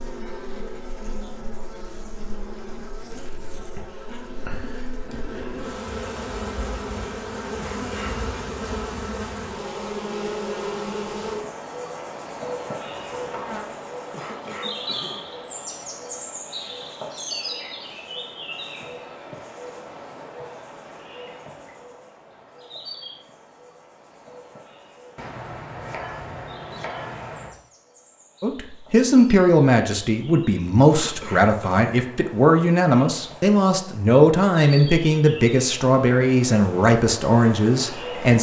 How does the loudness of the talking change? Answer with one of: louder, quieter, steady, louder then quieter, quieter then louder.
steady.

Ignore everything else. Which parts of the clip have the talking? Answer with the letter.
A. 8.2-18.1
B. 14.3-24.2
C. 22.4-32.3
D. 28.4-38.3
D.